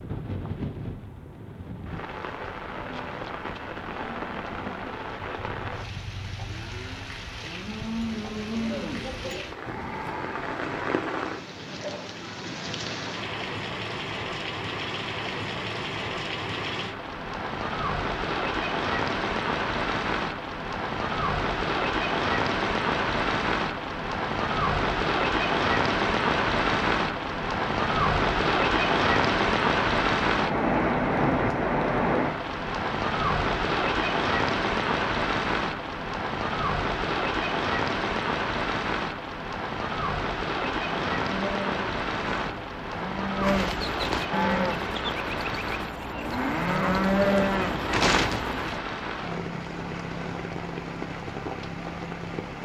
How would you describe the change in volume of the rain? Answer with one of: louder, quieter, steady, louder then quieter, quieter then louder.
louder then quieter.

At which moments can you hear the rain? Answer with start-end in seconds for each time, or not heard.
0.0-52.6.